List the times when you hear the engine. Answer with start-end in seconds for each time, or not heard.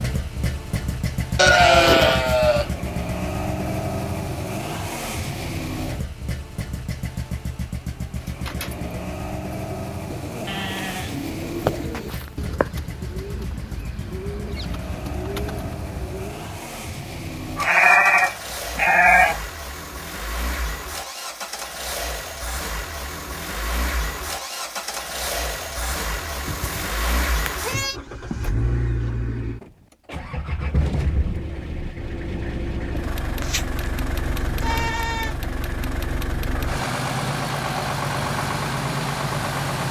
0.0-39.8.